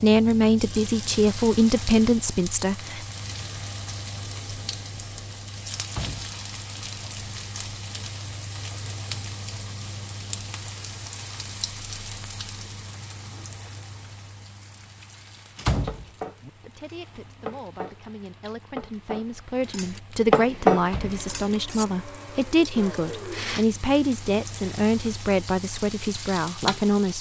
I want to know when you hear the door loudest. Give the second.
16 s.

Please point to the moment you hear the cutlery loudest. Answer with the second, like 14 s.
21 s.